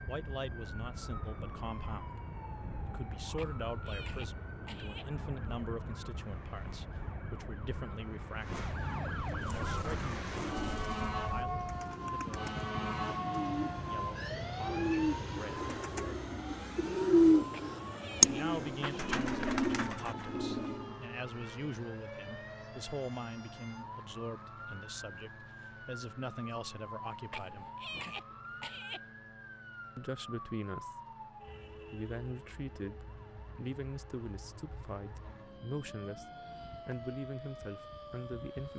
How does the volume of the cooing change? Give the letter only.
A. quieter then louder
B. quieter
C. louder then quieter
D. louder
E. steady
C.